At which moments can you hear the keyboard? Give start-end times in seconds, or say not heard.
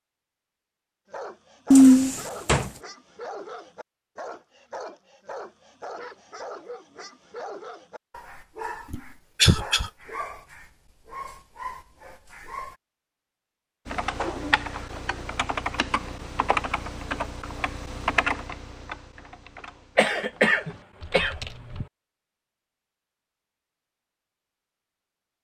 13.8-21.9.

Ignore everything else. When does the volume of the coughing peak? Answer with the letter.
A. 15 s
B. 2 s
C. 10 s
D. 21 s
B.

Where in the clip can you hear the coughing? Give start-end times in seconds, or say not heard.
1.7-2.7, 8.9-9.9, 19.9-21.9.